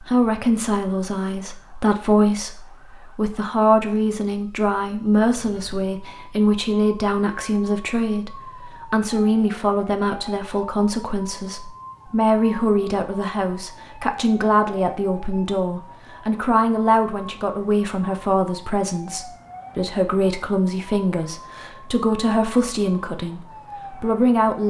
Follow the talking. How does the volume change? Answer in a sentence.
The loudness of the talking stays about the same.